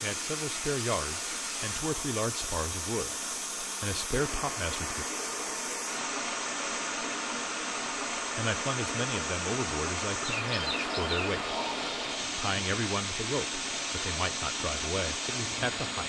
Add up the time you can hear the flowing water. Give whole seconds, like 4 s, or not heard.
16 s.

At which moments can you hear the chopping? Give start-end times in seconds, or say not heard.
not heard.